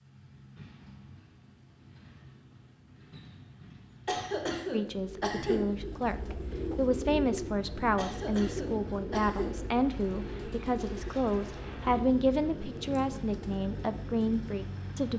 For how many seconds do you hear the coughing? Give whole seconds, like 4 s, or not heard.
3 s.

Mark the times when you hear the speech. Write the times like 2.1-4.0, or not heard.
4.7-15.1.